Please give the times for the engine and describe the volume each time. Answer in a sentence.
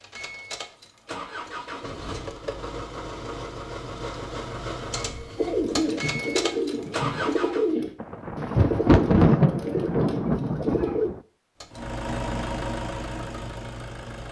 You can hear the engine from 0.0 to 7.8 s, getting louder; and briefly from 11.6 to 14.2 s.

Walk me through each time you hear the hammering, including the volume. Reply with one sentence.
You can't hear the hammering here.